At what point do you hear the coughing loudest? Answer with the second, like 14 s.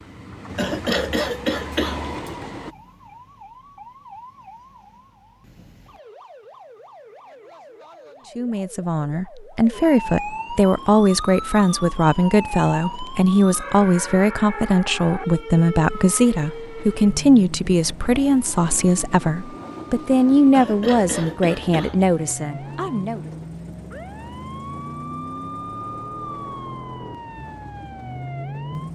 1 s.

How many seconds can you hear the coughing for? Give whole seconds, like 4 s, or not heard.
3 s.